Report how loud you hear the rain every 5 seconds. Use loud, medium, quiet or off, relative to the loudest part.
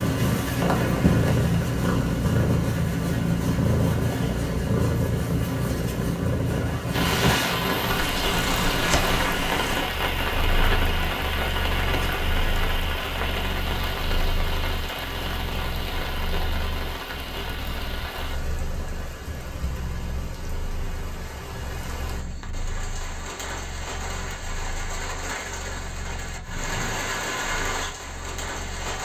off, loud, loud, medium, medium, medium.